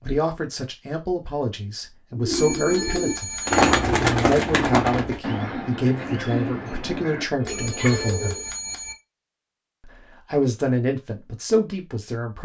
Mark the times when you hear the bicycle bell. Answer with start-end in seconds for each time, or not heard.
2.3-3.8, 7.4-8.9.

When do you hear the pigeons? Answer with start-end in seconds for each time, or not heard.
2.1-8.5.